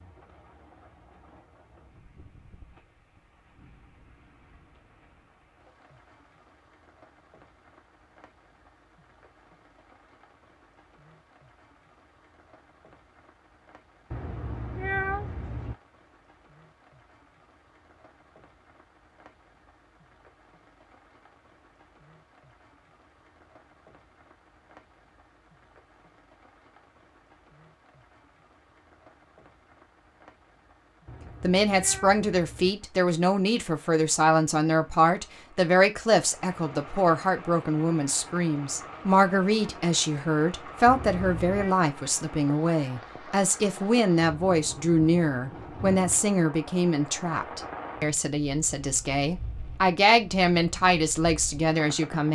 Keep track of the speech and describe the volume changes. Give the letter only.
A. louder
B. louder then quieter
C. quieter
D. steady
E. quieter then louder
D.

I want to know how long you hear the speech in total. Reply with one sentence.
The speech can be heard for 21 seconds in total.